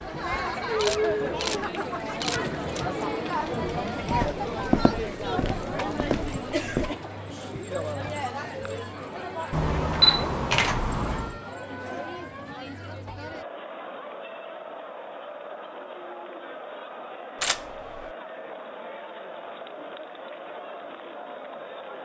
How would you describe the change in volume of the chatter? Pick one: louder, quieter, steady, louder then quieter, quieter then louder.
quieter.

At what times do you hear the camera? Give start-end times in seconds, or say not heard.
0.7-2.4, 9.5-11.3, 17.4-18.1.